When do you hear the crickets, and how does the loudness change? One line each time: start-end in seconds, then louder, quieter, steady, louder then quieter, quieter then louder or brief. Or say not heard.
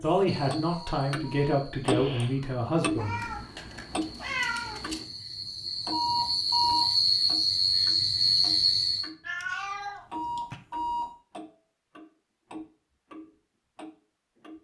0.0-9.1 quieter then louder.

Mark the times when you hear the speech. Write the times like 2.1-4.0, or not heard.
0.0-3.2.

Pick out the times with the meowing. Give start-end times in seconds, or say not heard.
3.0-5.0, 9.2-10.6.